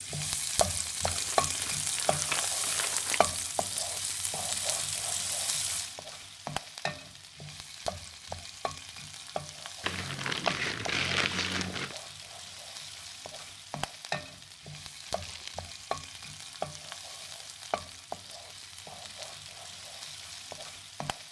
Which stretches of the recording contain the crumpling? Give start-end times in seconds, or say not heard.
1.1-3.2, 9.8-11.9, 15.1-15.7.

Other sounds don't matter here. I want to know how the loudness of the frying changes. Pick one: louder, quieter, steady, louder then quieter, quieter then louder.
quieter.